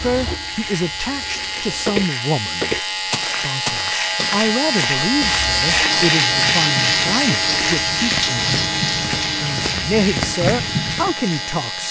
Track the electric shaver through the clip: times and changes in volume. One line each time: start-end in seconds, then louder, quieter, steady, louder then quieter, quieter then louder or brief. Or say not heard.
0.0-11.8 louder then quieter.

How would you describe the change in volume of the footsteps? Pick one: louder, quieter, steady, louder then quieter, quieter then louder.
quieter then louder.